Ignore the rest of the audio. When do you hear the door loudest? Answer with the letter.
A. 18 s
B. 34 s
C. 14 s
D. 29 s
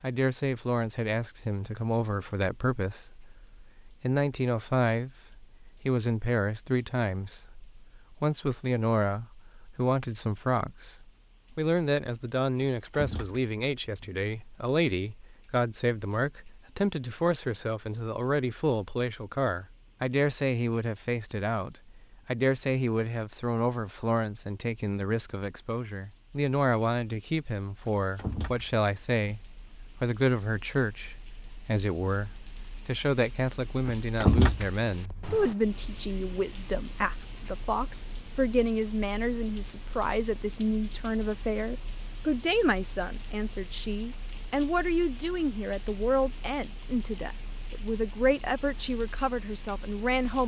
B.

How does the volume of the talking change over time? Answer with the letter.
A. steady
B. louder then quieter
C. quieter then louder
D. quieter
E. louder
A.